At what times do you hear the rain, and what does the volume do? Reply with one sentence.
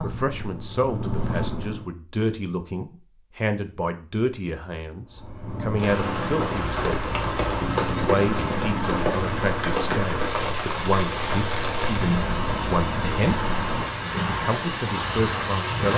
The rain can be heard from 5.8 to 15.9 s, at a steady volume.